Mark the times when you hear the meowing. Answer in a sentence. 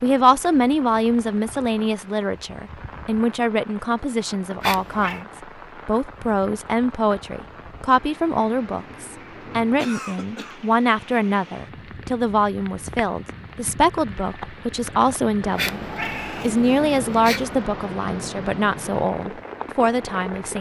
You can hear the meowing from 4.6 to 5.2 s and from 15.6 to 17.6 s.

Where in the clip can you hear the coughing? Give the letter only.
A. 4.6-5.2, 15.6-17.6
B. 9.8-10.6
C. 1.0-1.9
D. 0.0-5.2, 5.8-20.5
B.